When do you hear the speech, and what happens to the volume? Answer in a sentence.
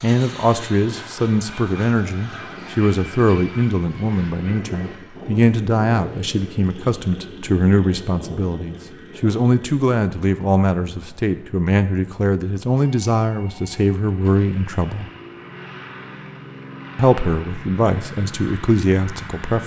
The speech can be heard from 0.0 to 15.1 s, at a steady volume; and briefly from 16.9 to 19.6 s.